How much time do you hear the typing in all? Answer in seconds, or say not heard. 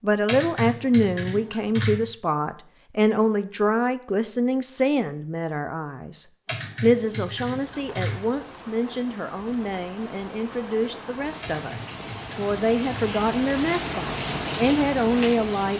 5 s.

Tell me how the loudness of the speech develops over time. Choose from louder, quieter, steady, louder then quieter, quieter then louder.
quieter then louder.